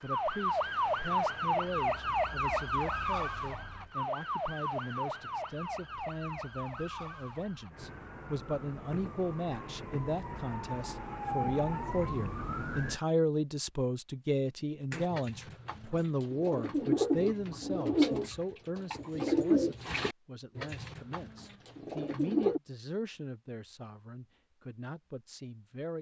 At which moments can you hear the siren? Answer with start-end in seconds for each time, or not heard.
0.0-13.0.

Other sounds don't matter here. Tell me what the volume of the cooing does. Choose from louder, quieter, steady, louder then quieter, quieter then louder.
louder then quieter.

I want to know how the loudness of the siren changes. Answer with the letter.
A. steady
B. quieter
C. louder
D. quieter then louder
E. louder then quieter
D.